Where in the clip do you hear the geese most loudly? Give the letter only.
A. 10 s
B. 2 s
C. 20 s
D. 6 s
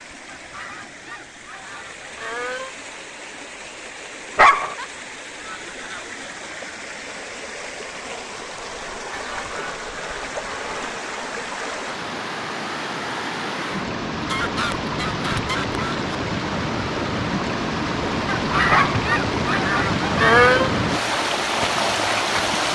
C.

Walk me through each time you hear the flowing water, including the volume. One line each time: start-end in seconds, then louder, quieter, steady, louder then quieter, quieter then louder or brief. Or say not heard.
0.0-22.6 louder.